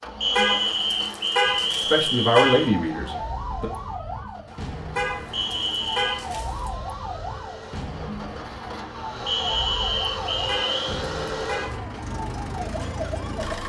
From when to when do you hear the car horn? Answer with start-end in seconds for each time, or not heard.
0.3-2.7, 5.0-6.7, 10.4-11.8.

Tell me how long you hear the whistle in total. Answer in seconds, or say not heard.
5 s.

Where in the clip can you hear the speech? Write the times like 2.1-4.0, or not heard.
1.8-3.7.